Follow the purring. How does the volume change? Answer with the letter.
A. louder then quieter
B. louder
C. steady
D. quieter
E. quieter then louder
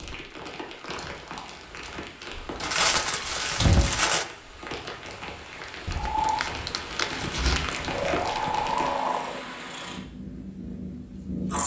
A.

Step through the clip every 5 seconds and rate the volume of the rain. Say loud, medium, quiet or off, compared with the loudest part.
loud, loud, off.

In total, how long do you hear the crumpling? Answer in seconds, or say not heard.
4 s.